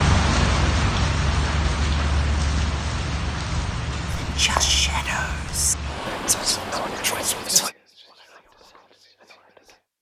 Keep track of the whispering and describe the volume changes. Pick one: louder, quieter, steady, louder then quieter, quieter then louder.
quieter.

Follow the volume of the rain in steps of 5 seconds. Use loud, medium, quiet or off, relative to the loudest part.
loud, medium.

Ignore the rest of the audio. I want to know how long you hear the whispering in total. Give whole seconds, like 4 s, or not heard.
6 s.